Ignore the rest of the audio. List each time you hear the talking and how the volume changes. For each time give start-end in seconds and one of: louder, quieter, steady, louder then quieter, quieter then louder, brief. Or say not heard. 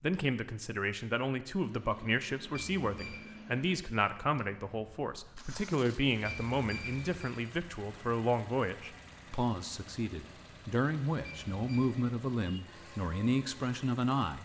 0.0-14.3 steady.